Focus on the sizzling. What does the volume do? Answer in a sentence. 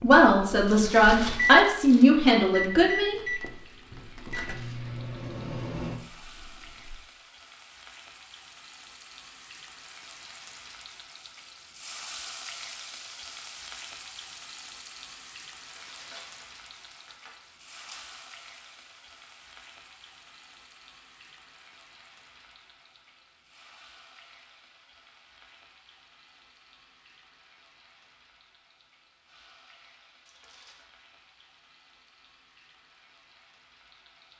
The volume of the sizzling goes up, then down.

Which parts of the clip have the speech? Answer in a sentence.
You can hear the speech from 0.0 to 3.1 s.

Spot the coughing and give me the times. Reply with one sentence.
The coughing can't be heard in this clip.